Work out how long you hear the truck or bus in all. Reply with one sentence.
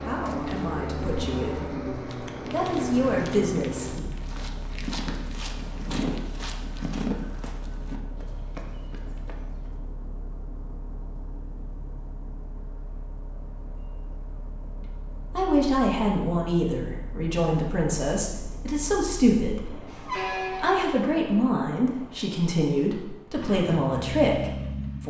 You can hear the truck or bus for 25 seconds altogether.